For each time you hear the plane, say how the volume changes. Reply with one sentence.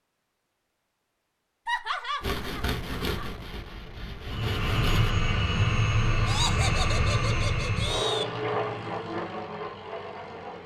The plane can be heard from 4.2 to 10.6 s, getting quieter.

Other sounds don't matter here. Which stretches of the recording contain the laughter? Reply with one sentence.
You can hear the laughter from 1.6 to 3.4 s and from 6.2 to 8.2 s.